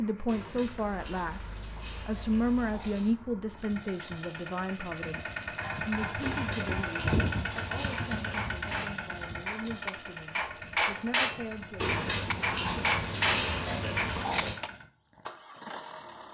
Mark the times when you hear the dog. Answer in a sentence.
The dog can be heard from 0.2 to 3.2 s, from 6.2 to 8.4 s and from 11.8 to 14.6 s.